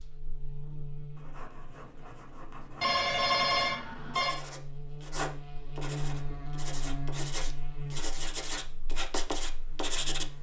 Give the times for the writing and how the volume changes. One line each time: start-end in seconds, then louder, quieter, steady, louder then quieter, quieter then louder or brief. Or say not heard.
1.1-10.3 louder.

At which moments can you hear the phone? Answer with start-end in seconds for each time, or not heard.
2.8-4.4.